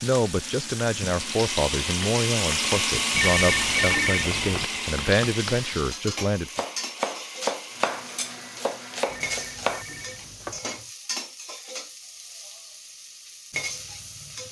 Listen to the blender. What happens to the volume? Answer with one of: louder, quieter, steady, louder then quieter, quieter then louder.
quieter.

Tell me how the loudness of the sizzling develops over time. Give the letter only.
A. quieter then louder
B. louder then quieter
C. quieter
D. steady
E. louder
C.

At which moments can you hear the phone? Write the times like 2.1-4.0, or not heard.
3.1-4.7, 9.1-10.6.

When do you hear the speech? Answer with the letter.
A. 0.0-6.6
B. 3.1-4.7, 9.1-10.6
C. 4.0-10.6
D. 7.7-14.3
A.